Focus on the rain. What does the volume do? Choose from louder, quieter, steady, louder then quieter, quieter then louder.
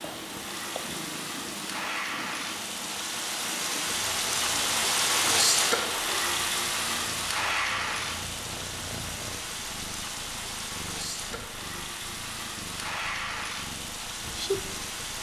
louder then quieter.